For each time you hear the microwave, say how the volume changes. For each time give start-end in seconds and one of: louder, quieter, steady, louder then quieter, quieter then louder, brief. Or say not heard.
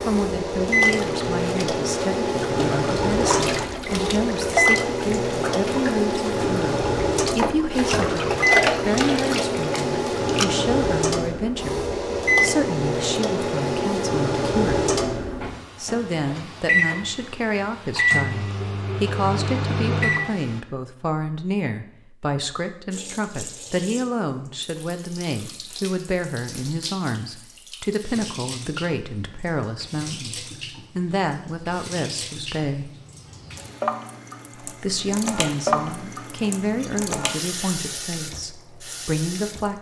0.0-20.6 steady.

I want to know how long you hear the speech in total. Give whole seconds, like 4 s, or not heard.
37 s.